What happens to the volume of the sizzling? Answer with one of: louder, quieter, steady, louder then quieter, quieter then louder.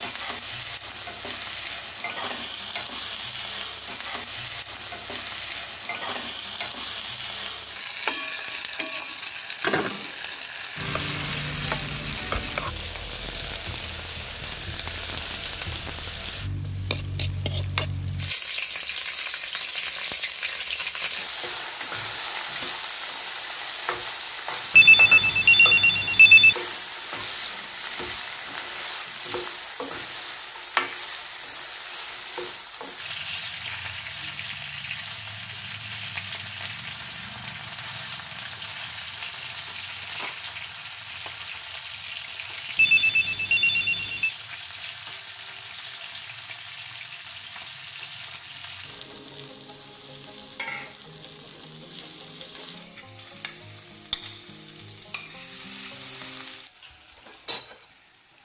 quieter.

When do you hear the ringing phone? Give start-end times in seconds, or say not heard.
24.8-26.6, 42.8-44.3.